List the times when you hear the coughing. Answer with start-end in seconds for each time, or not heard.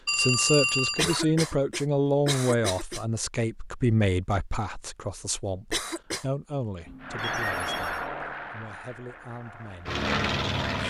0.9-3.0, 5.7-6.3.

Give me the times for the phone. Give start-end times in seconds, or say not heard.
0.1-1.3, 6.8-8.1.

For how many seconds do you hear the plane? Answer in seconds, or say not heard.
4 s.